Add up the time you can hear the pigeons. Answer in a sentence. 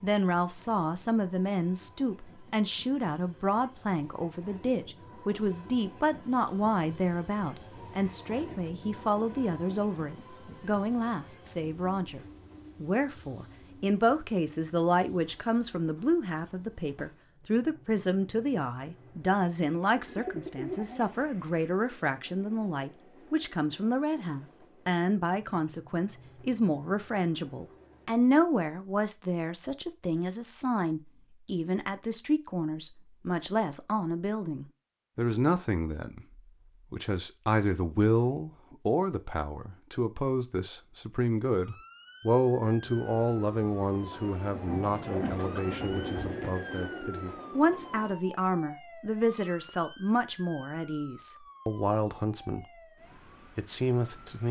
The pigeons can be heard for 4 seconds in total.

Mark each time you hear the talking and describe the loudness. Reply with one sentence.
You can hear the talking from 0.0 to 12.2 s, at a steady volume; from 12.8 to 52.6 s, at a steady volume; and briefly from 53.5 to 54.4 s.